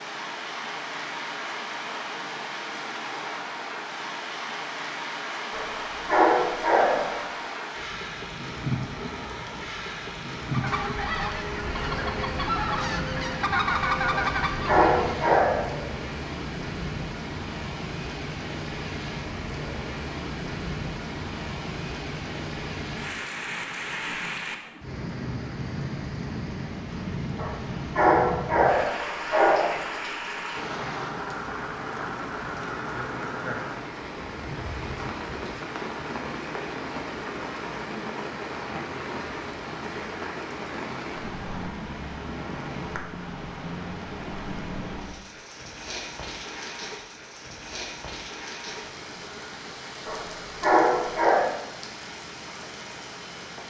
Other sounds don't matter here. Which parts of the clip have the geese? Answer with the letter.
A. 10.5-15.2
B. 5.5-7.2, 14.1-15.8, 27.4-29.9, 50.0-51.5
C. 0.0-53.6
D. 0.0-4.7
A.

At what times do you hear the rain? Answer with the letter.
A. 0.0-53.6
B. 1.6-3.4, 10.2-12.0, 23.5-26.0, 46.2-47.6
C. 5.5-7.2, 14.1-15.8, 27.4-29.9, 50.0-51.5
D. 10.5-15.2
A.